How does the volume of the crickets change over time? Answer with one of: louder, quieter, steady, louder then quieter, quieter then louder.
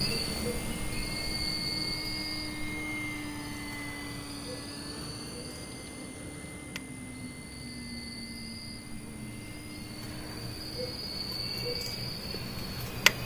quieter then louder.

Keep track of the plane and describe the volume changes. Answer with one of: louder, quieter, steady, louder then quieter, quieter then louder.
quieter.